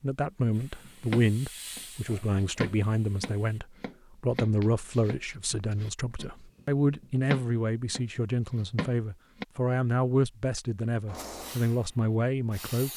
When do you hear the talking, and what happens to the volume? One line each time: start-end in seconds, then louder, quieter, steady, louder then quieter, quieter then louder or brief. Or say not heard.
0.0-12.9 steady.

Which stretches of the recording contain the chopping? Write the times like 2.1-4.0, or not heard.
0.8-9.4.